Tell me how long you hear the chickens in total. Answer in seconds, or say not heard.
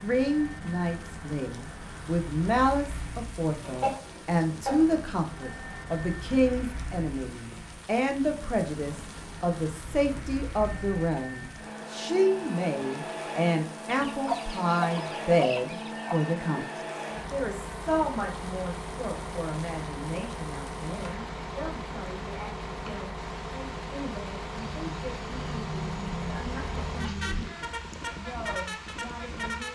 7 s.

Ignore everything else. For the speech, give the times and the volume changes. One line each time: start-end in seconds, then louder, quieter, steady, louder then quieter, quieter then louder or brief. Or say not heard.
0.0-29.7 quieter.